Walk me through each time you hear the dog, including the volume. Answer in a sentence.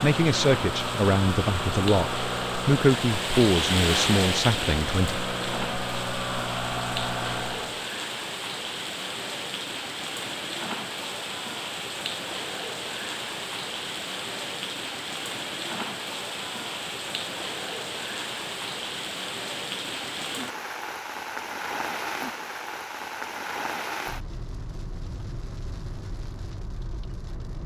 You can't hear the dog here.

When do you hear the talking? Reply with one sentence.
The talking can be heard from 0.0 to 5.2 s.